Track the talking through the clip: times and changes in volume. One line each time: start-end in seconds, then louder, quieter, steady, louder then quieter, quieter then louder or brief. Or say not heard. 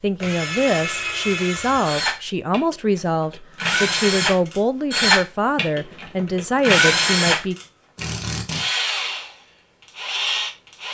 0.0-7.5 steady.